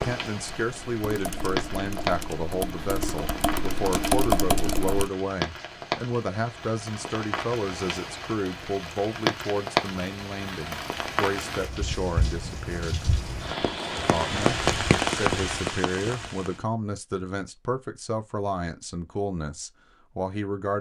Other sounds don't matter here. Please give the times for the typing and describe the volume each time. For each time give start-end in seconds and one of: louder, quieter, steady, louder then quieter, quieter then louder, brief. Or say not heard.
0.0-5.1 louder.